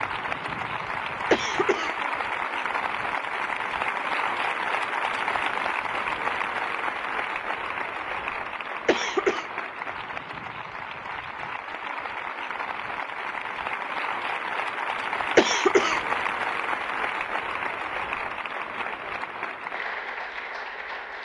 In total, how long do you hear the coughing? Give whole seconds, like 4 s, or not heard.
2 s.